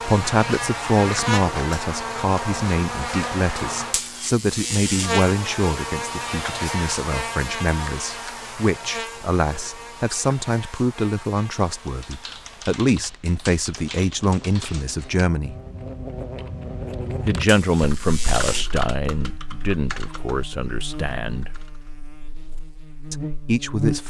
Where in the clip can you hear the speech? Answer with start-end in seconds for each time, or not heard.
0.0-15.6, 17.2-21.6, 23.1-24.0.